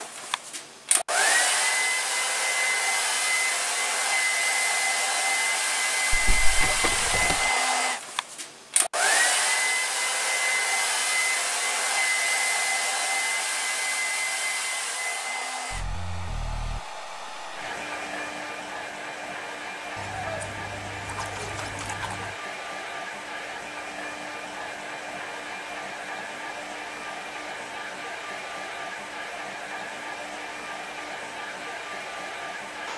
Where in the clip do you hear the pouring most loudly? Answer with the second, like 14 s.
7 s.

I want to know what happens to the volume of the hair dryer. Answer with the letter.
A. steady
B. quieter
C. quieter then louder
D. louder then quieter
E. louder
B.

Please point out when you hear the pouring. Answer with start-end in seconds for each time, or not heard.
6.1-7.5, 19.9-22.4.